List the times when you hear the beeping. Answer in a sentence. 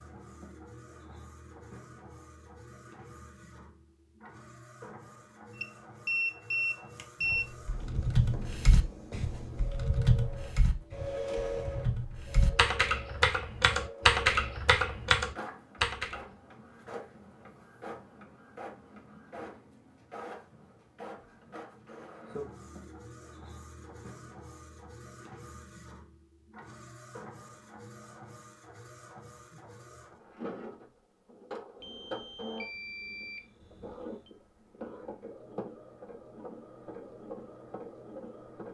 You can hear the beeping from 5.5 to 7.5 s and from 31.8 to 34.3 s.